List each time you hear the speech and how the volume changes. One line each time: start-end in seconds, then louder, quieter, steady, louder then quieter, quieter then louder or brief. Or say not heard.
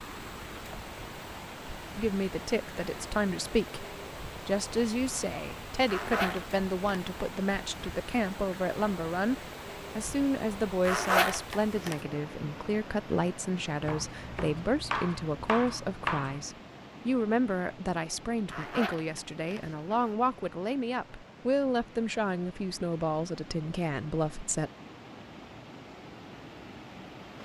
1.9-9.3 steady
9.9-24.7 steady.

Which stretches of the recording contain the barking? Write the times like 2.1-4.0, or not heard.
not heard.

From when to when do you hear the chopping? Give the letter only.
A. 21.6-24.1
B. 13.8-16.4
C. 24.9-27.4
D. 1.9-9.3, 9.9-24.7
B.